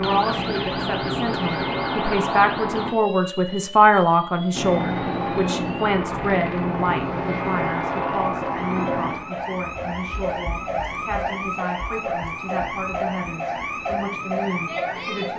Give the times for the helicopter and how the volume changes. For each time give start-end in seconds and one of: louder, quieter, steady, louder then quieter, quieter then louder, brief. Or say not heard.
0.0-3.0 brief
4.5-15.3 quieter.